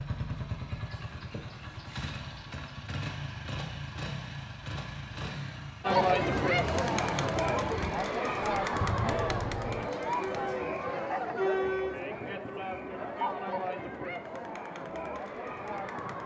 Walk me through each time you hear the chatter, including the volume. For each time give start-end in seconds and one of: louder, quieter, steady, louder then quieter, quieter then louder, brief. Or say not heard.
5.8-16.2 quieter.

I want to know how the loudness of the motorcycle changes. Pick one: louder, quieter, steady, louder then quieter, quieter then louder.
steady.